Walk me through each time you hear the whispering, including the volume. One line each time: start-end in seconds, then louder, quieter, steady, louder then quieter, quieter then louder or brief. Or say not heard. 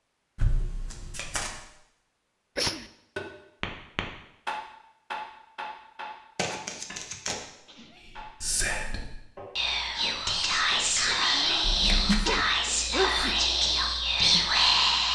8.0-15.1 louder.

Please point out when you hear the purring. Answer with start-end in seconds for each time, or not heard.
not heard.